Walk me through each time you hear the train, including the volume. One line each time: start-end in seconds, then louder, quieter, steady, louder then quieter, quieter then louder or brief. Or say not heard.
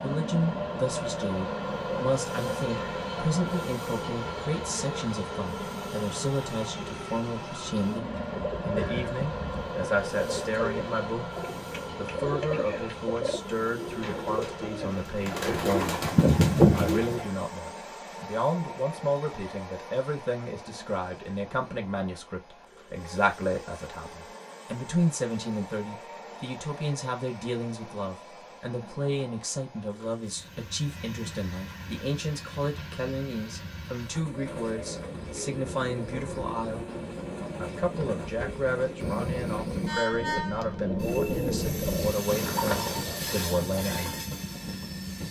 0.0-45.2 quieter then louder.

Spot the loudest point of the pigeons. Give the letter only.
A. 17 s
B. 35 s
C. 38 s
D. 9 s
A.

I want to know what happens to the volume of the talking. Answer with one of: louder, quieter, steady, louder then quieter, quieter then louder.
steady.